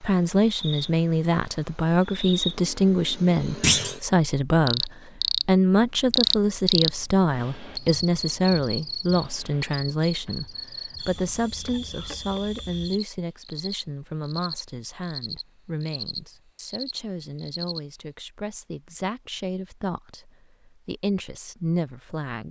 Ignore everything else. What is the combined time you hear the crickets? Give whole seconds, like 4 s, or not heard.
18 s.